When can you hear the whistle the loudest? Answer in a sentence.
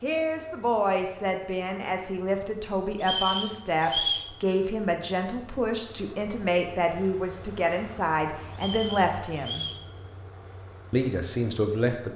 The volume of the whistle peaks at 4 seconds.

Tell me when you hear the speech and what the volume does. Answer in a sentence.
The speech can be heard from 0.0 to 9.7 s, at a steady volume; and briefly from 10.9 to 12.1 s.